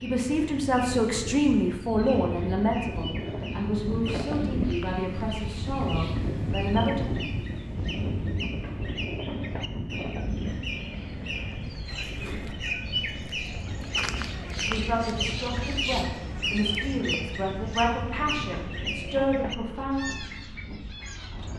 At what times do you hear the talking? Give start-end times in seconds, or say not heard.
0.0-7.1, 14.7-20.1.